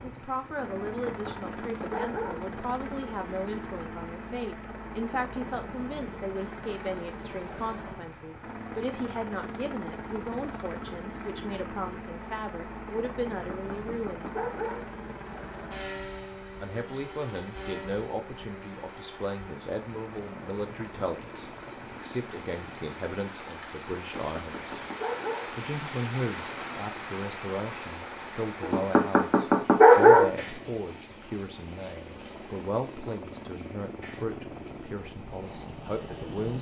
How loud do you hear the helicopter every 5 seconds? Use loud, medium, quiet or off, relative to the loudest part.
loud, loud, loud, loud, medium, medium, loud, loud.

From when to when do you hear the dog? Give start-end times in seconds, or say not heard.
0.8-2.4, 13.3-14.8, 23.9-25.5, 28.6-30.3.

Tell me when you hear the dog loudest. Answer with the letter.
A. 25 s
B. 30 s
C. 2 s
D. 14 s
B.